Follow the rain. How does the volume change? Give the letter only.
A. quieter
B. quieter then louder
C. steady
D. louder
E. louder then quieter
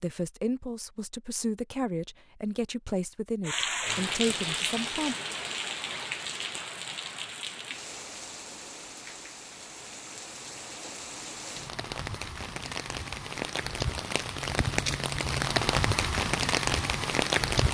B.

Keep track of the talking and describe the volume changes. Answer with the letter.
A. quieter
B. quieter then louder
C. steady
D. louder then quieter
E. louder
C.